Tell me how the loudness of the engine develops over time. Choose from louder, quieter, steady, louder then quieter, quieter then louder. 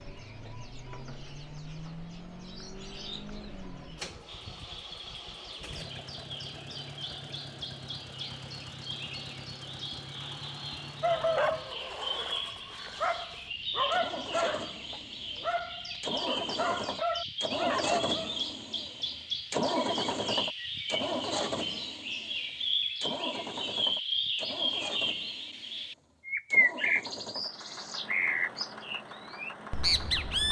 louder then quieter.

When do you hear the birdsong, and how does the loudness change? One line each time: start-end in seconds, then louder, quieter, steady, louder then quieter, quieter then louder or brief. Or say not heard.
0.0-30.4 louder.